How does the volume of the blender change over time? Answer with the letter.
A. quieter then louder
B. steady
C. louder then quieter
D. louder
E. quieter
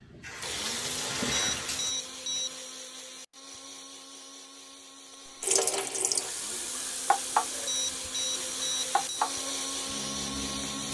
A.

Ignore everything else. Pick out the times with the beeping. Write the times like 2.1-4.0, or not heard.
1.3-2.5, 7.7-9.2.